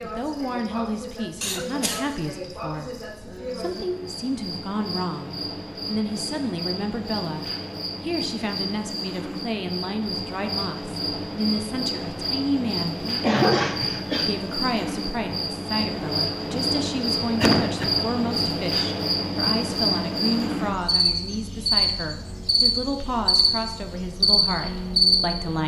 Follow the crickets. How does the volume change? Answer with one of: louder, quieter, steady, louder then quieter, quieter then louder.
louder.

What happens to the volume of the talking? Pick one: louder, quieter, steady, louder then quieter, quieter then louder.
steady.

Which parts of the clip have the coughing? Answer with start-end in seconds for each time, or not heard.
1.4-2.0, 13.2-14.3, 17.4-18.0.